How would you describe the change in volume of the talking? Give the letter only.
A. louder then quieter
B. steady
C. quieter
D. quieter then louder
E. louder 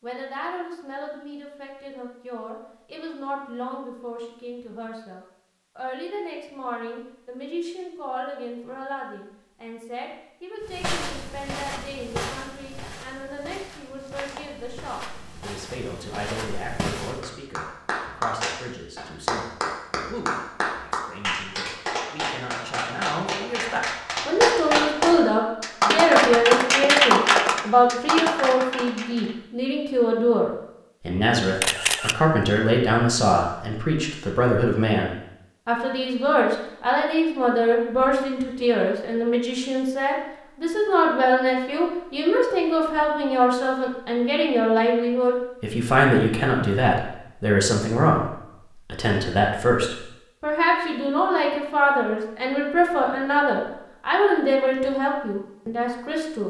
E.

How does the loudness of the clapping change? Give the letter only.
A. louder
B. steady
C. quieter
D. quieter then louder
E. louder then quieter
A.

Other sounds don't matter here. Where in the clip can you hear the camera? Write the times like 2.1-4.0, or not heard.
31.6-32.1.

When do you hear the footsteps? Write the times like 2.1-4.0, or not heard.
10.6-17.2.